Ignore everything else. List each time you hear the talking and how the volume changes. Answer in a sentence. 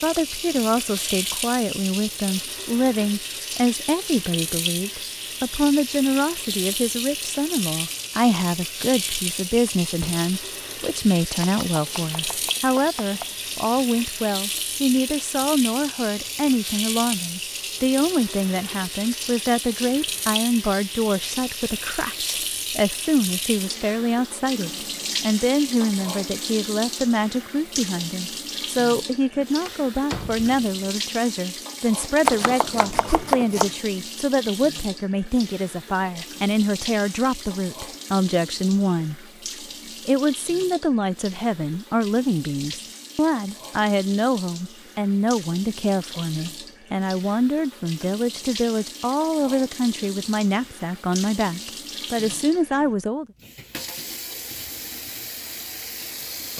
You can hear the talking from 0.0 to 39.2 s, at a steady volume; and from 40.0 to 53.2 s, at a steady volume.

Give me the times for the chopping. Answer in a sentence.
You can hear the chopping from 11.4 to 13.3 s and from 32.2 to 33.8 s.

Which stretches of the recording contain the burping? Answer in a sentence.
You can't hear the burping here.